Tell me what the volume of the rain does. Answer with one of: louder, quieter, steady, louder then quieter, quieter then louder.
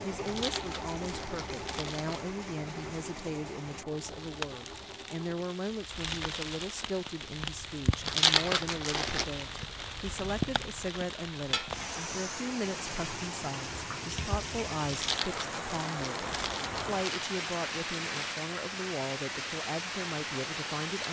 louder.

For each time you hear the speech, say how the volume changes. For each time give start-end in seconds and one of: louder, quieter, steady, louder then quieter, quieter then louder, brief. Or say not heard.
0.0-21.0 steady.